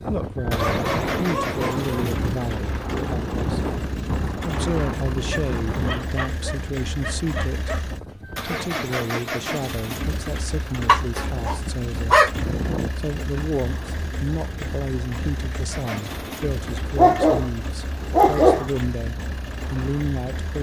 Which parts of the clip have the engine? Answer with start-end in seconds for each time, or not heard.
0.0-20.5.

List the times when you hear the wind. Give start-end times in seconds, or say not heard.
0.0-20.5.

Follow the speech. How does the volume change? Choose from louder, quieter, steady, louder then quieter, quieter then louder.
steady.